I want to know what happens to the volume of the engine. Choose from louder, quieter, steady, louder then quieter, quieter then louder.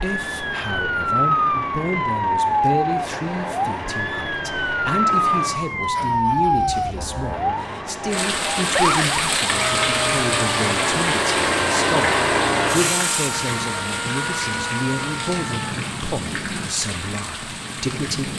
louder then quieter.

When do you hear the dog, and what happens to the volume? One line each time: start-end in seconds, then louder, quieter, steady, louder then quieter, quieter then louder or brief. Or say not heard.
not heard.